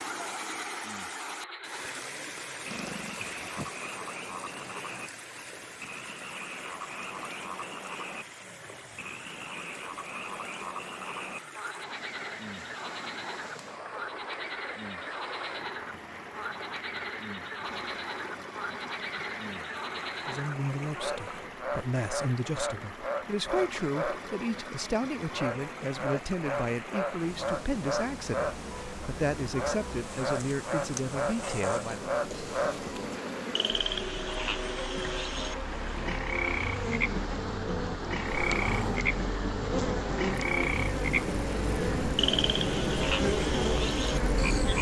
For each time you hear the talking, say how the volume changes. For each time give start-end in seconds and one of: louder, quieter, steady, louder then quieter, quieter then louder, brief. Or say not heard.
20.2-32.0 steady.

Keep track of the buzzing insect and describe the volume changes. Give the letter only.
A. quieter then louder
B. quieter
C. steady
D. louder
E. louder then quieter
D.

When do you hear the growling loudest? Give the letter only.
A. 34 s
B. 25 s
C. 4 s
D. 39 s
D.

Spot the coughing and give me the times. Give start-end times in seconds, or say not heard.
not heard.